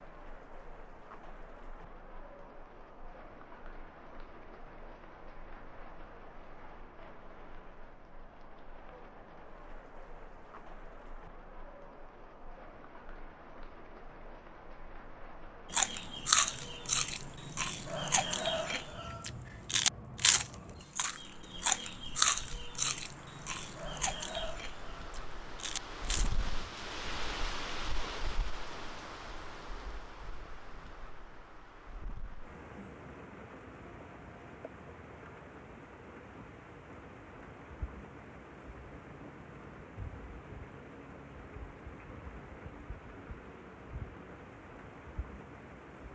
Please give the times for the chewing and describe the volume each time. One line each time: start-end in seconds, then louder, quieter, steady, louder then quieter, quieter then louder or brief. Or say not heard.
15.7-26.4 quieter.